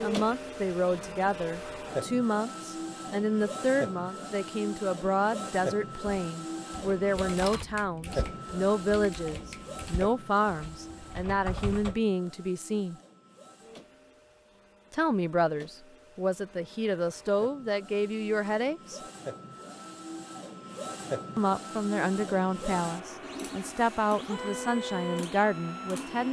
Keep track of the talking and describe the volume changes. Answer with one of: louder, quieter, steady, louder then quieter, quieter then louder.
steady.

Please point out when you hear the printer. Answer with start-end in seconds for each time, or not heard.
0.0-26.2.